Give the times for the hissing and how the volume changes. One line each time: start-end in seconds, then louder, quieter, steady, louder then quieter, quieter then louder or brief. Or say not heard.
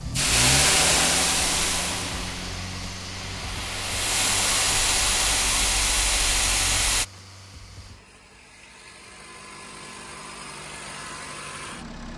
0.0-7.0 quieter then louder.